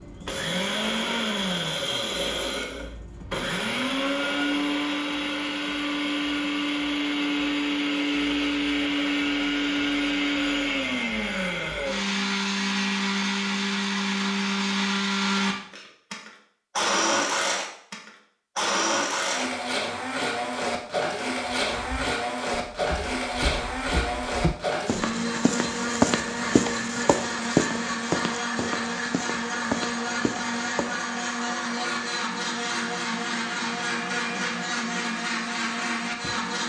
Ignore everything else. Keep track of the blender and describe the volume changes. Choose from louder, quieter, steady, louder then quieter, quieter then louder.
steady.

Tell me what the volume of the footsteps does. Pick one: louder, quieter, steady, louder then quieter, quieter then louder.
louder then quieter.